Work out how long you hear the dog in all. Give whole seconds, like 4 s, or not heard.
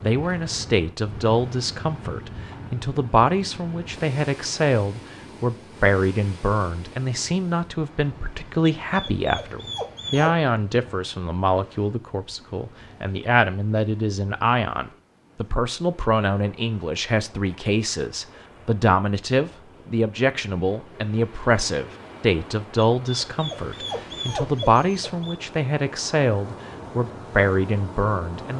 4 s.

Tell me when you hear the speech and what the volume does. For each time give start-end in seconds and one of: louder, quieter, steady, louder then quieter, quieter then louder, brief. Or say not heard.
0.0-28.5 steady.